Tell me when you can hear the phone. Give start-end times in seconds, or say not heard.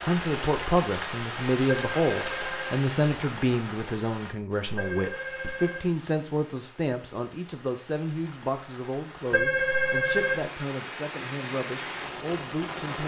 1.6-2.9, 4.8-5.9, 9.3-10.5.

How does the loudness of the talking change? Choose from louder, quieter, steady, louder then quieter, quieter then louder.
quieter.